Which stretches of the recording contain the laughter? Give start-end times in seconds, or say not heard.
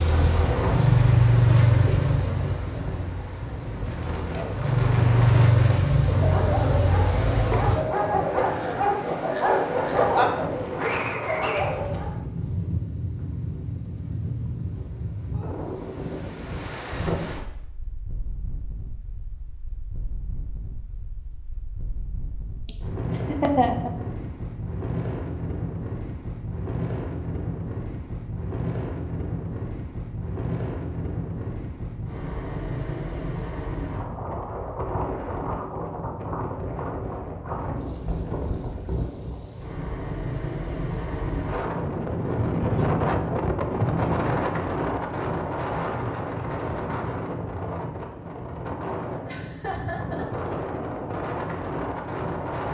7.5-10.1, 22.6-23.9, 49.2-50.5.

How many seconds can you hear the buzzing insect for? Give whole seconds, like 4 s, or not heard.
8 s.